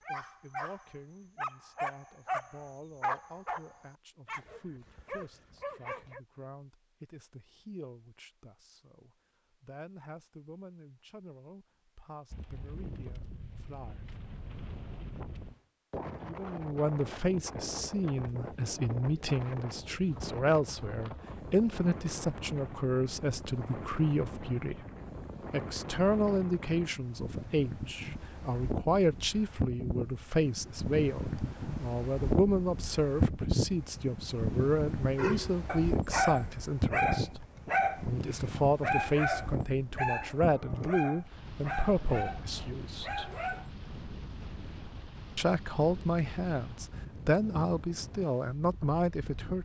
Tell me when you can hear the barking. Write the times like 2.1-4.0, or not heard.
0.0-6.2, 35.1-38.0, 38.8-43.7.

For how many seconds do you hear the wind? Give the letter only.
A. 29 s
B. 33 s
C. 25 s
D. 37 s
D.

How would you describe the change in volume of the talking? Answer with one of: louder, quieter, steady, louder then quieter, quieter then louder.
louder.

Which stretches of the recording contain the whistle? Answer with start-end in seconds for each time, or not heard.
not heard.